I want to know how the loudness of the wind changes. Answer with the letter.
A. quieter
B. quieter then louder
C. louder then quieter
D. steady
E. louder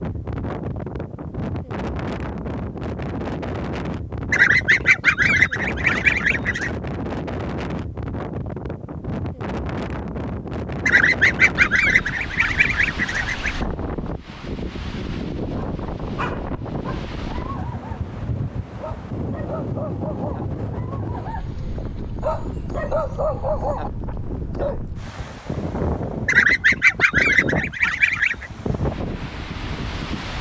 D.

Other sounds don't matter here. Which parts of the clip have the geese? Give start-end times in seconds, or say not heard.
4.3-6.7, 10.8-13.6, 26.2-28.5.